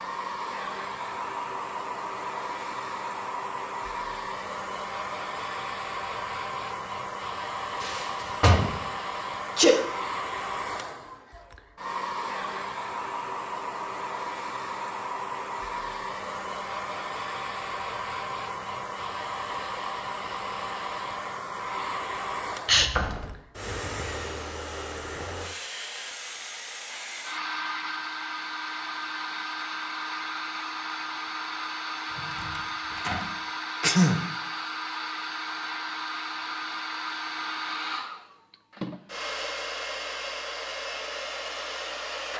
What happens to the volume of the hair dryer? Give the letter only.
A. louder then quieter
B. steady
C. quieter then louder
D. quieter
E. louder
B.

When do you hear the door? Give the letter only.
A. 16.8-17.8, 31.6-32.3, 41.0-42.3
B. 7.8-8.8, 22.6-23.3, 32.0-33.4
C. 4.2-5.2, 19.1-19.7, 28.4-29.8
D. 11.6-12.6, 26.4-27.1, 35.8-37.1
B.